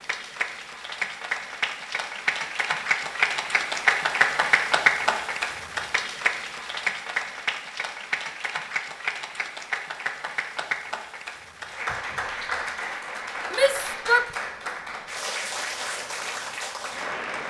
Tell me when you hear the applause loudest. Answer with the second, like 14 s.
4 s.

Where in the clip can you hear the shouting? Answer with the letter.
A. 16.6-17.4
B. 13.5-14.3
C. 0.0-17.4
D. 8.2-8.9
B.